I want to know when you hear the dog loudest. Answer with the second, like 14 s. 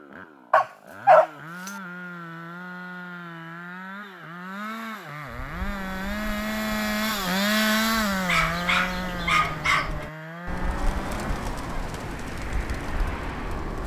1 s.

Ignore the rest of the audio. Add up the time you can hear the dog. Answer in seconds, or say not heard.
3 s.